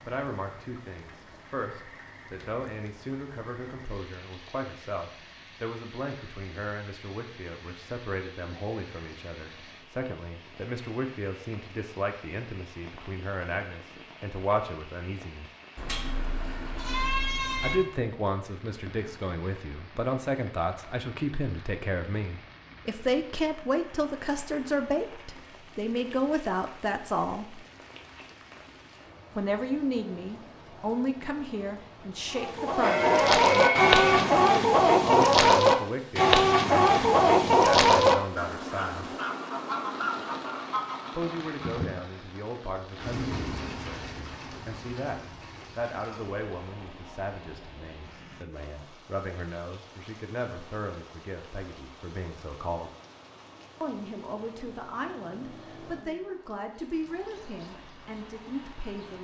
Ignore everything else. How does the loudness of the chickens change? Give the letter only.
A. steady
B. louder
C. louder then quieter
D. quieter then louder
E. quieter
E.